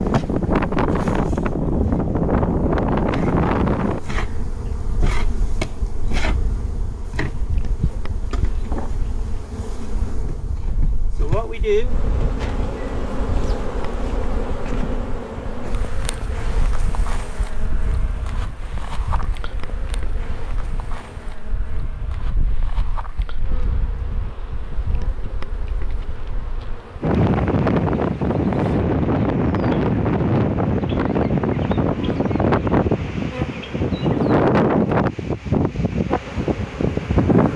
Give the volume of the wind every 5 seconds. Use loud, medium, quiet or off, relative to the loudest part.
loud, quiet, quiet, quiet, quiet, loud, loud, loud.